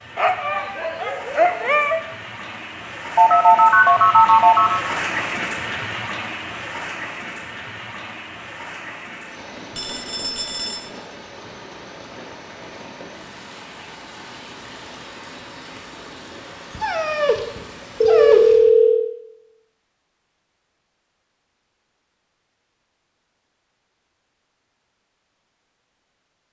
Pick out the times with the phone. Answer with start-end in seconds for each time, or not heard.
3.1-5.0, 9.8-10.9, 18.0-19.1.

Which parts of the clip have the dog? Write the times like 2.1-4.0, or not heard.
0.1-2.0, 16.7-18.7.